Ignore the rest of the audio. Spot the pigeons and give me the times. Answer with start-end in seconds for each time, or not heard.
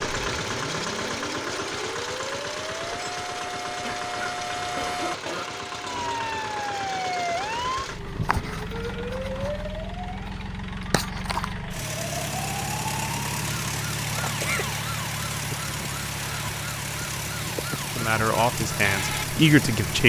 not heard.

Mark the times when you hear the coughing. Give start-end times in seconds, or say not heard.
3.8-5.5, 14.1-14.7.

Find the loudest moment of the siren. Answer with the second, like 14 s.
7 s.